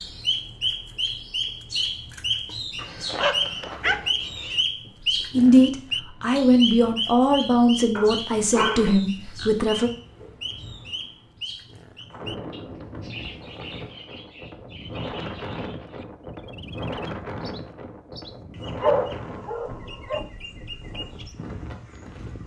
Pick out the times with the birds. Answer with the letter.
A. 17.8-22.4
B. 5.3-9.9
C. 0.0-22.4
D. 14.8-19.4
C.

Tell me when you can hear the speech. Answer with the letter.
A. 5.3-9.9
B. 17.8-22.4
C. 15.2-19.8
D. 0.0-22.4
A.